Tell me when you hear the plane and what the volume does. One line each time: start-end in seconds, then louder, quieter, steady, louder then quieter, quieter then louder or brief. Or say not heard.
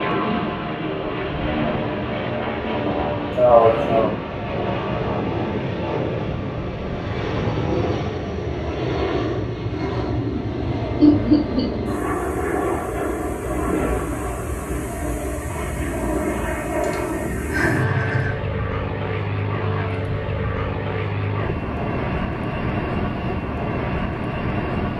0.0-24.9 steady.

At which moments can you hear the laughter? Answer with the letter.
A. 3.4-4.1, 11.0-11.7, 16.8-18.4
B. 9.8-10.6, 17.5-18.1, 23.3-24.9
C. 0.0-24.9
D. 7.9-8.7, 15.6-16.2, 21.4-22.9
A.